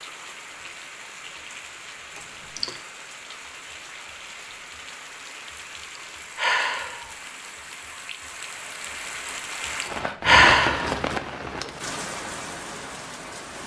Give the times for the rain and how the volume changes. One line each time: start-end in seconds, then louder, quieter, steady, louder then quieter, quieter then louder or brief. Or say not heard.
0.0-13.6 louder.